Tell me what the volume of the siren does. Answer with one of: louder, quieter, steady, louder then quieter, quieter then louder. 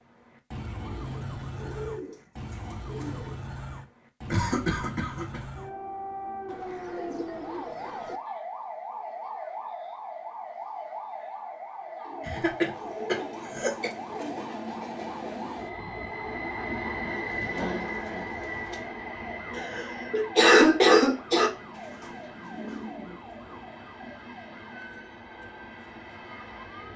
quieter.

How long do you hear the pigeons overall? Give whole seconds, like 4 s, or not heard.
10 s.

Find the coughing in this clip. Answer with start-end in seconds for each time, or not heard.
4.3-5.4, 12.2-13.9, 19.6-21.5.